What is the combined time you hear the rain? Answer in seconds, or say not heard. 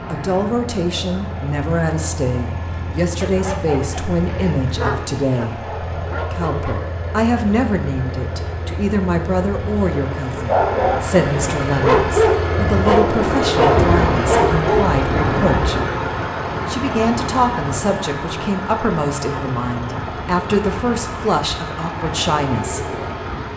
not heard.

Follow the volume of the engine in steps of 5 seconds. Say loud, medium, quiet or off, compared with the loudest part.
medium, medium, loud, loud, medium.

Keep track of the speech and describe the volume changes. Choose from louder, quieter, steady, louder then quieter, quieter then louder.
steady.